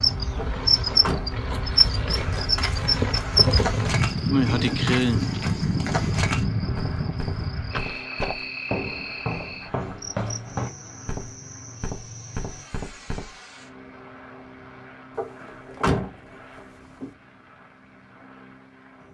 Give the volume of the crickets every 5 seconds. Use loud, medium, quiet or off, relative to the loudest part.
loud, medium, quiet, off.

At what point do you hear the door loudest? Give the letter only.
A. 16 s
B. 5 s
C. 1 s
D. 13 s
A.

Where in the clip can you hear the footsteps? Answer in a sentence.
You can hear the footsteps from 2.1 to 13.3 s.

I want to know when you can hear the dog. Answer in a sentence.
The dog can't be heard in this clip.